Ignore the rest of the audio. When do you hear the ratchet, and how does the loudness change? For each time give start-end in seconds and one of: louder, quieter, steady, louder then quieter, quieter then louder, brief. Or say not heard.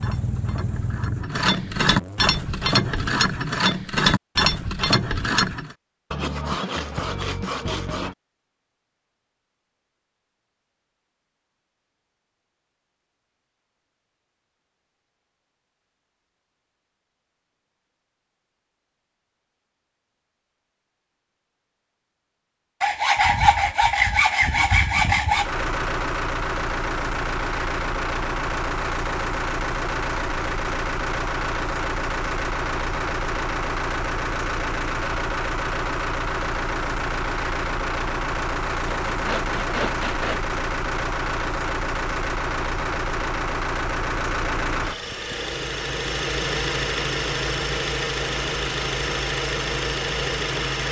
0.0-5.8 louder.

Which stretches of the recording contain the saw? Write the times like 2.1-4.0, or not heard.
6.1-8.2, 22.8-25.5, 39.1-40.4.